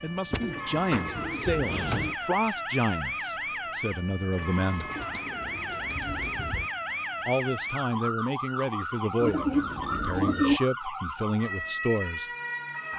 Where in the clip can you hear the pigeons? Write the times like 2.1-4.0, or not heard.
0.3-2.1, 4.8-6.7, 9.2-10.6.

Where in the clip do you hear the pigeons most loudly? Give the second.
10 s.